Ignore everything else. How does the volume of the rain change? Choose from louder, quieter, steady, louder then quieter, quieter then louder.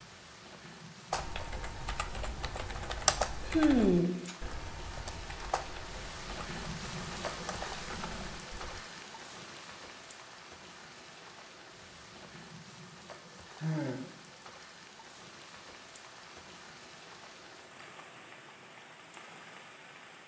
louder then quieter.